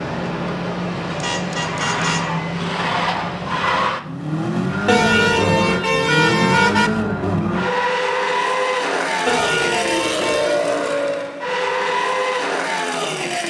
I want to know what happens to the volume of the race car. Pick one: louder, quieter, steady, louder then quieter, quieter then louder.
steady.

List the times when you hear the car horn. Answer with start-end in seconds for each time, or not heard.
1.1-2.4, 4.8-6.9, 9.2-10.7.